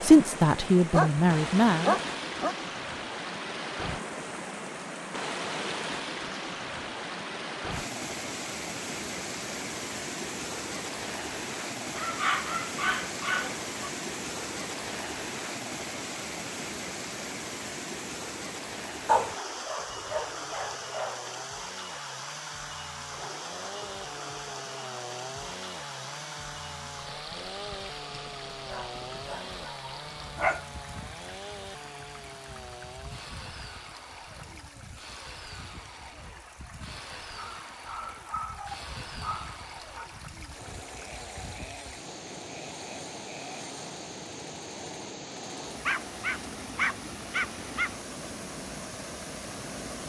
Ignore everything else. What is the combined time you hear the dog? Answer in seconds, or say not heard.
12 s.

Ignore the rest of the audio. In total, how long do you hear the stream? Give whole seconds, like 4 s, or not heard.
50 s.